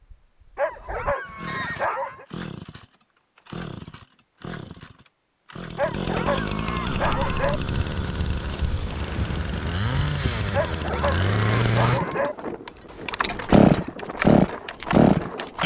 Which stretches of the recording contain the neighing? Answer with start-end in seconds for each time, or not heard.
1.2-1.9.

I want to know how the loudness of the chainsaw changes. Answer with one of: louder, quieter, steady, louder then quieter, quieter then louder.
louder.